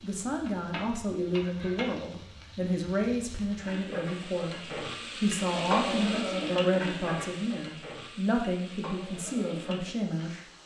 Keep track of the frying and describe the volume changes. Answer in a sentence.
The loudness of the frying goes up, then down.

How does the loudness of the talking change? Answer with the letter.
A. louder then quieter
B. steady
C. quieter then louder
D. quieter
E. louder
B.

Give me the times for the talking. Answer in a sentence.
The talking can be heard from 0.0 to 10.4 s.